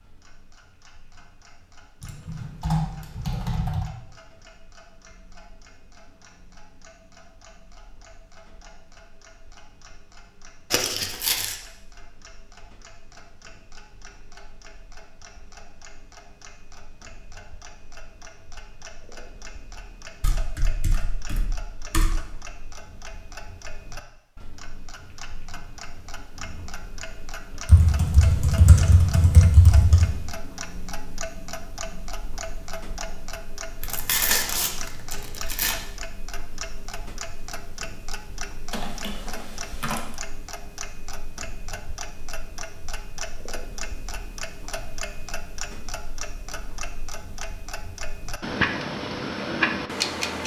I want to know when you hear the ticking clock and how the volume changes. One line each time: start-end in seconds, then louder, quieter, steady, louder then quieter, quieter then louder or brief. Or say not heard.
0.0-50.4 louder.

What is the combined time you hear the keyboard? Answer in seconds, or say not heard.
8 s.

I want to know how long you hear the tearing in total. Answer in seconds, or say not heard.
3 s.